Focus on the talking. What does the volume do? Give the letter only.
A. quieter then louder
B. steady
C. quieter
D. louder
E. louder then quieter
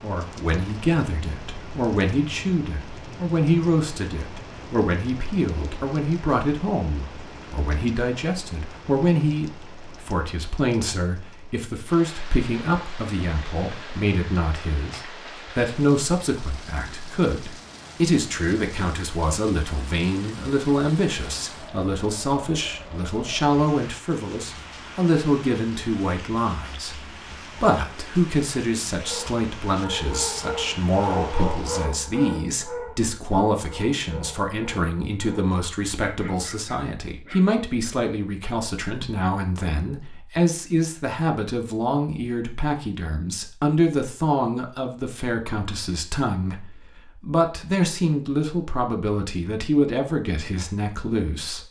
B.